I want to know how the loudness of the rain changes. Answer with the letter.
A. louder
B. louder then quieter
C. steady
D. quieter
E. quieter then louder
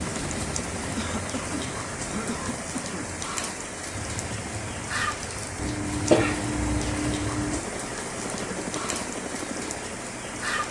C.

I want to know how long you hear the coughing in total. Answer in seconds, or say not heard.
4 s.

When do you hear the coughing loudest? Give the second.
6 s.